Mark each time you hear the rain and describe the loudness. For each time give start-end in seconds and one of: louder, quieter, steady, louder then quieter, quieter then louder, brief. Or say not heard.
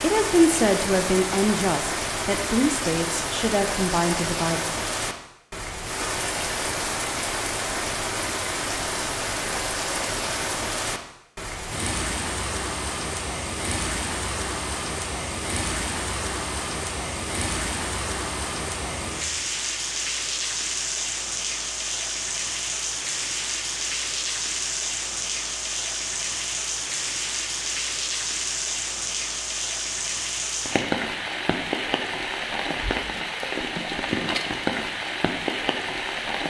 0.0-36.4 steady.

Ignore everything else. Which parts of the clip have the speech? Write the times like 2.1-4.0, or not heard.
0.0-4.6.